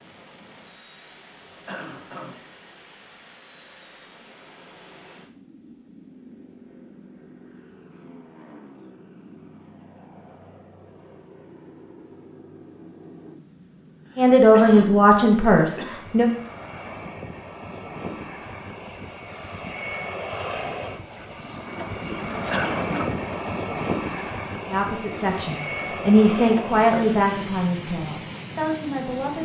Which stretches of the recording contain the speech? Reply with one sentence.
The speech can be heard from 14.2 to 16.2 s and from 24.6 to 29.4 s.